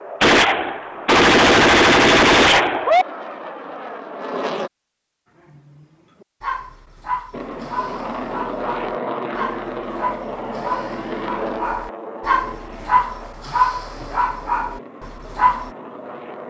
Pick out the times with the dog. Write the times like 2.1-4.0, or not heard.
5.5-15.7.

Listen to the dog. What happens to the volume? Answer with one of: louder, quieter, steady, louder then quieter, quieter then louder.
louder.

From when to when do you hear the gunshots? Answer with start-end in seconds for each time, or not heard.
0.2-3.0.